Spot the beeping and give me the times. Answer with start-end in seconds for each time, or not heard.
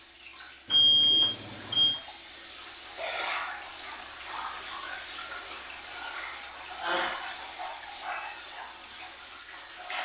0.7-2.0.